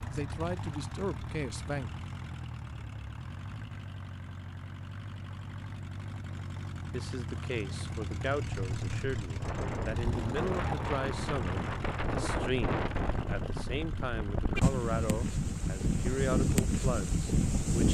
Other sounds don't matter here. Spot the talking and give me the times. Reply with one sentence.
You can hear the talking from 0.1 to 1.9 s and from 6.9 to 17.8 s.